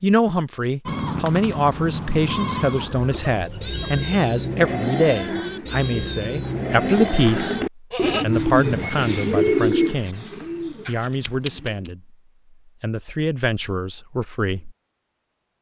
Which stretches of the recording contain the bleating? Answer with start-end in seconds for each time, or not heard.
0.8-8.2.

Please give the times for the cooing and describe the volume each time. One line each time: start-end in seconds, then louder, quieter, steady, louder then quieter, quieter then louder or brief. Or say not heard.
2.8-11.9 louder then quieter.